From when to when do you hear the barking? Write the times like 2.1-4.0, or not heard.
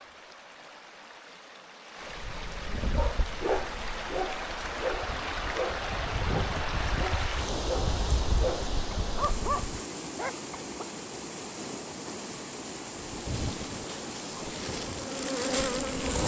3.0-10.8.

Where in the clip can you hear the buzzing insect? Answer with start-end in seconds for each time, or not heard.
2.1-9.8, 13.0-16.2.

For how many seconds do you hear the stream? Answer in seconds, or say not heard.
16 s.